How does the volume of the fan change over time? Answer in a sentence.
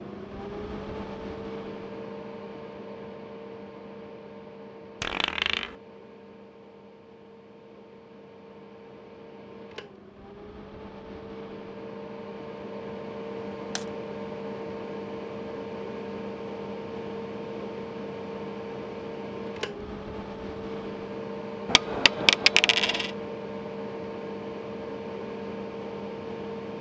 The loudness of the fan goes down, then up.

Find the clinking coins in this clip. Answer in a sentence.
The clinking coins can be heard from 5.0 to 5.8 s and from 21.6 to 23.1 s.